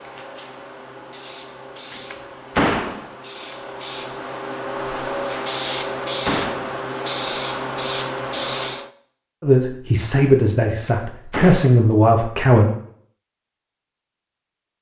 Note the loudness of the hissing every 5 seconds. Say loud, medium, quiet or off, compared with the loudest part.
medium, loud, off.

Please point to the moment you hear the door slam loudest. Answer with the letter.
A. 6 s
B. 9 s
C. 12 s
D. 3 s
D.